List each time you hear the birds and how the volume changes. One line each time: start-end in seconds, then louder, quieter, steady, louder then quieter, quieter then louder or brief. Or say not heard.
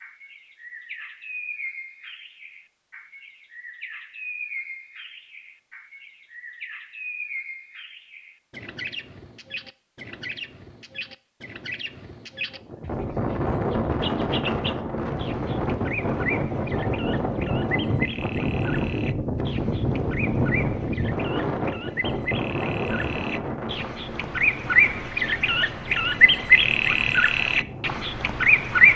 0.0-28.9 louder.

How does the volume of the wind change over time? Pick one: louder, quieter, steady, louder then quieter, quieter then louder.
quieter.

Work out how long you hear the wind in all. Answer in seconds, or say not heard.
16 s.